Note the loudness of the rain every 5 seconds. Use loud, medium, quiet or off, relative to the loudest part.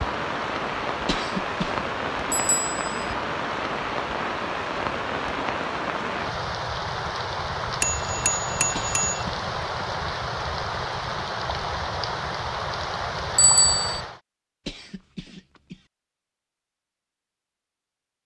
loud, loud, loud, off.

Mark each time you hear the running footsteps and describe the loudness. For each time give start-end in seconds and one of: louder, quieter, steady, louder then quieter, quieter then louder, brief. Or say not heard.
not heard.